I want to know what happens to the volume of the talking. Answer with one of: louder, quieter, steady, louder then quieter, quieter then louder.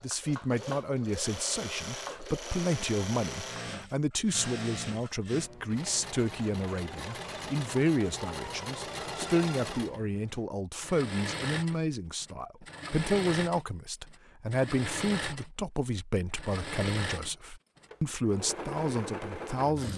steady.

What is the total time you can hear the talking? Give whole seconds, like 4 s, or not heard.
20 s.